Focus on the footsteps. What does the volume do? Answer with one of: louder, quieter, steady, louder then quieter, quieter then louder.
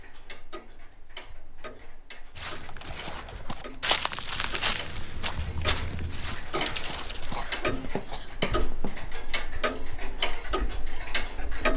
quieter.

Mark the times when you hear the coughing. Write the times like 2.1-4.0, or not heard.
6.5-8.3.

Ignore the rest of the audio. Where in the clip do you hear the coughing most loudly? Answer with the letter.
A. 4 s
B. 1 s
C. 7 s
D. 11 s
C.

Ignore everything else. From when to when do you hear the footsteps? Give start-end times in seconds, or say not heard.
2.4-9.1.